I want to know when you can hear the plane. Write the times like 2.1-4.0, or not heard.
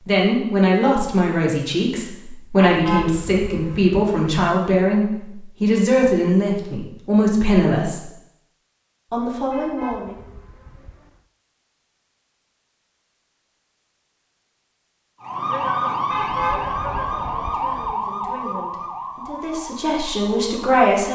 not heard.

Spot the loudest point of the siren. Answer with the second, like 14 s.
16 s.